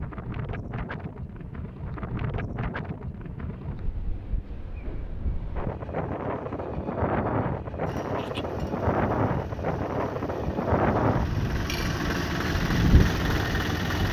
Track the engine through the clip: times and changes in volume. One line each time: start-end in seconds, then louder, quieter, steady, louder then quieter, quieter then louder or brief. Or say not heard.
7.8-14.0 louder.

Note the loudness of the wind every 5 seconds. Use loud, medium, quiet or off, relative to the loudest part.
medium, loud, loud.